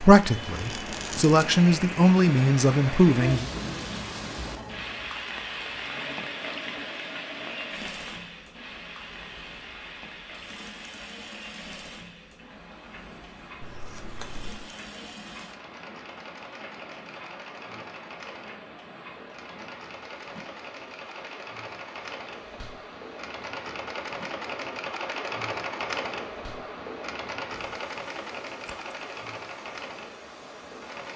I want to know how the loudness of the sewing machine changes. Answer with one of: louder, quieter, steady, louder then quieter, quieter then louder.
louder.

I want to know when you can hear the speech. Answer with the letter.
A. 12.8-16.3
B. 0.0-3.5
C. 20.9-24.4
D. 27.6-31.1
B.